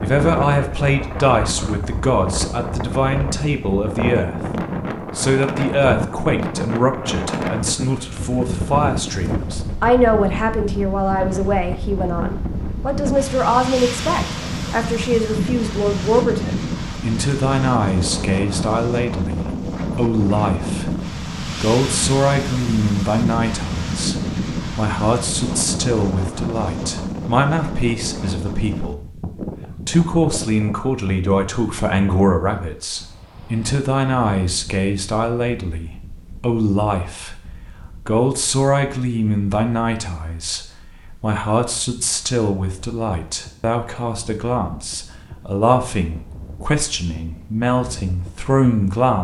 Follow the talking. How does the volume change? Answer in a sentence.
The volume of the talking stays about the same.